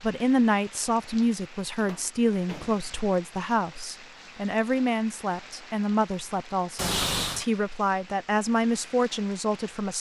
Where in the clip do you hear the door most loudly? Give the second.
7 s.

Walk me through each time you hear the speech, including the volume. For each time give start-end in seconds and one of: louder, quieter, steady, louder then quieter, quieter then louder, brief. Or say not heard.
0.0-9.9 steady.